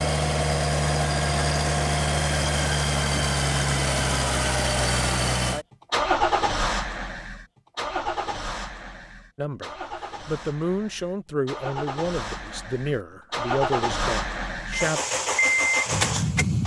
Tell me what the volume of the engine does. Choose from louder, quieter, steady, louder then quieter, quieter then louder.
quieter then louder.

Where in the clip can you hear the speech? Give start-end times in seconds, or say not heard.
9.3-15.0.